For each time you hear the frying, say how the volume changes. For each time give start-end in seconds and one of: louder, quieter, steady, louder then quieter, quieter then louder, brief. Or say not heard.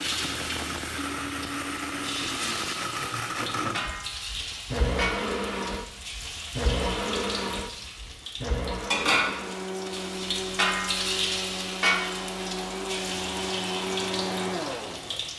0.0-15.3 louder then quieter.